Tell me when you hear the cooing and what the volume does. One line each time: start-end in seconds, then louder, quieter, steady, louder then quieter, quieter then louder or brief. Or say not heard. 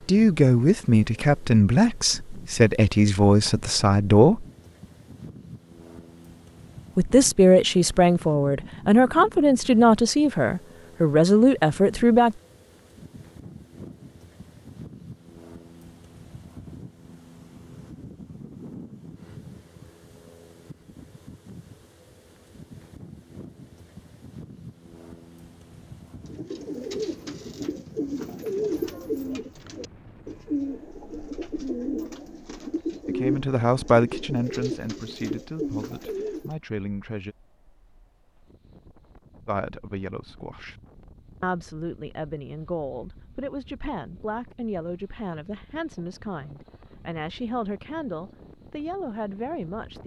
26.2-36.5 steady.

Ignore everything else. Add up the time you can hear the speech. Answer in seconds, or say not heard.
24 s.